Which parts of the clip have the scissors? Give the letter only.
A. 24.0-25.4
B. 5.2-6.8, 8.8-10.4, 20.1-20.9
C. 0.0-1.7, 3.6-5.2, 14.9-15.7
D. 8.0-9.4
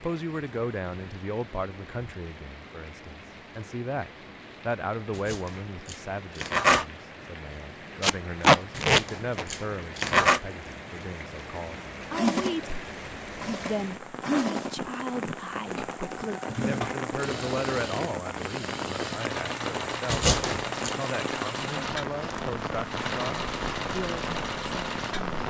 B.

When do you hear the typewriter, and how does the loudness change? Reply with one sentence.
The typewriter can't be heard in this clip.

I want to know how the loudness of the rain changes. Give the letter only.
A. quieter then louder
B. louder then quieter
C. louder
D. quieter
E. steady
C.